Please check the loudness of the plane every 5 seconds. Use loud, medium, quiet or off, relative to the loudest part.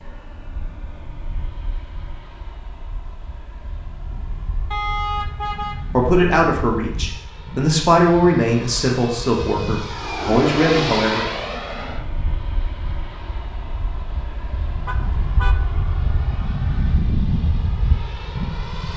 quiet, medium, loud, loud.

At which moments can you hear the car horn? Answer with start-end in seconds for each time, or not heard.
4.7-5.8, 14.8-15.6.